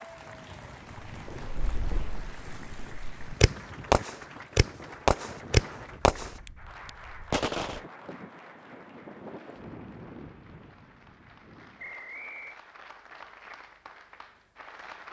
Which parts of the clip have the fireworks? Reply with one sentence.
You can hear the fireworks from 1.2 to 7.8 s.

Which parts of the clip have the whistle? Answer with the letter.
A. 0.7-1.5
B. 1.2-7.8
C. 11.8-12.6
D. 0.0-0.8
C.